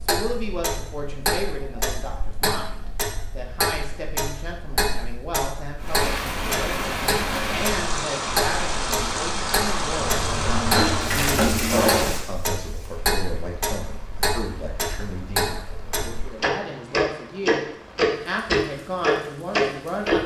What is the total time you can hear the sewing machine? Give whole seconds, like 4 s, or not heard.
2 s.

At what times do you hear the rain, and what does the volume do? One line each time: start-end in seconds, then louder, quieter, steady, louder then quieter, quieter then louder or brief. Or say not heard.
5.8-20.1 quieter.